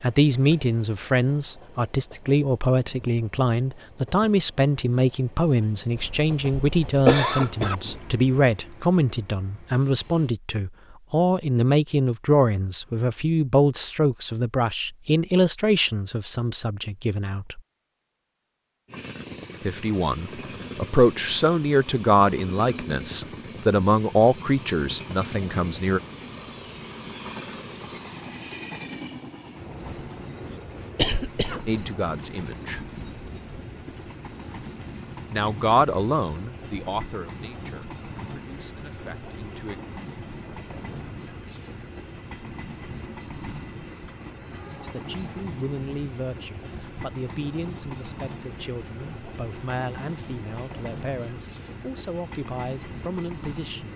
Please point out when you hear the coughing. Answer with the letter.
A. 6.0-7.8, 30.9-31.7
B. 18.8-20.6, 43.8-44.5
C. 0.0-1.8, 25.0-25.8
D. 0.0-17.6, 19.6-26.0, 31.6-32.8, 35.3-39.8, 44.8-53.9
A.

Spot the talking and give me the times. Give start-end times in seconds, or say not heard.
0.0-17.6, 19.6-26.0, 31.6-32.8, 35.3-39.8, 44.8-53.9.